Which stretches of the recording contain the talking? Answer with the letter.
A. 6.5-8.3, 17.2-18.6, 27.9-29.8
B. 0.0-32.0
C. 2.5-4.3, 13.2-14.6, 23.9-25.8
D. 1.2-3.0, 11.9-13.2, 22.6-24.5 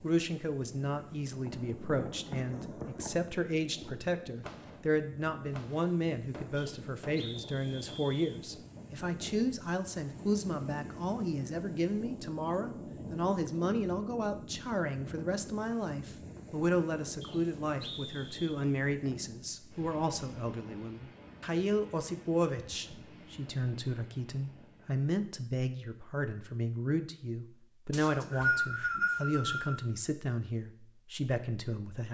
B.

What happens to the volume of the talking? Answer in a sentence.
The volume of the talking stays about the same.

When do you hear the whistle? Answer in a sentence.
You can hear the whistle from 6.5 to 8.3 s, from 17.2 to 18.6 s and from 27.9 to 29.8 s.